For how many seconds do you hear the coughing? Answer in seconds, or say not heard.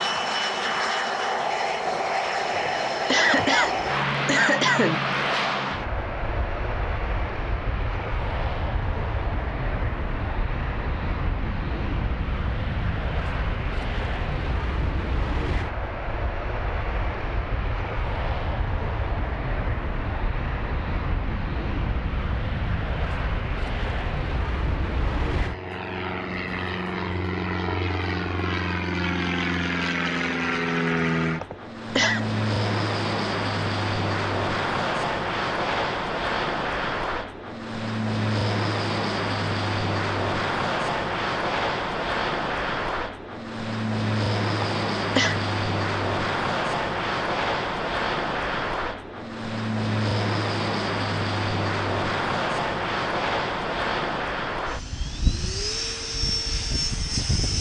4 s.